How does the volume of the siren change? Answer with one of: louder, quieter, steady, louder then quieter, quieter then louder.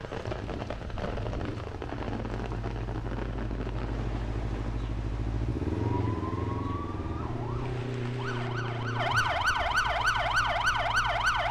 louder.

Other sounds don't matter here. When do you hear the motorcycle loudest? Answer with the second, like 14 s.
6 s.